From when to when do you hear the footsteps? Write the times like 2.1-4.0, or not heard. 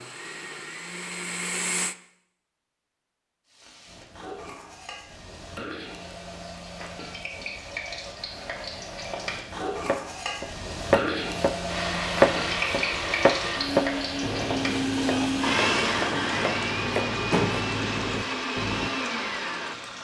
not heard.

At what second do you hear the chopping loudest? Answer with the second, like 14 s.
12 s.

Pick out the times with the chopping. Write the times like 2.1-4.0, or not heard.
9.8-18.9.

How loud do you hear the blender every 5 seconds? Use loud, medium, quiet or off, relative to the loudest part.
medium, off, loud, loud.